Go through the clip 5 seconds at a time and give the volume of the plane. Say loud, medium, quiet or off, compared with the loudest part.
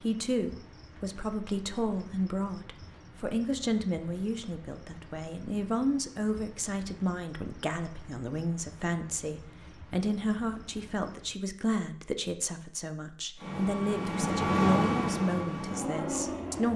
off, off, loud, medium.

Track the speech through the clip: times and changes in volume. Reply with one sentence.
You can hear the speech from 0.0 to 16.7 s, at a steady volume.